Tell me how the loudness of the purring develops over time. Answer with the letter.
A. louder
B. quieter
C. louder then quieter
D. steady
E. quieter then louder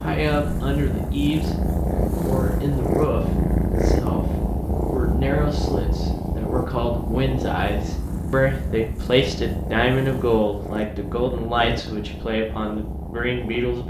B.